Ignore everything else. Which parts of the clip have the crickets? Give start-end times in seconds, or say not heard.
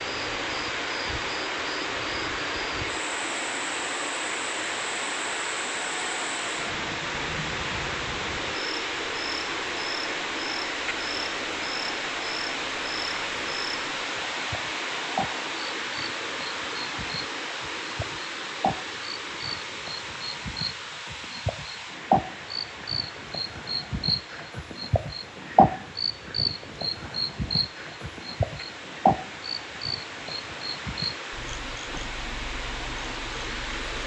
0.0-34.0.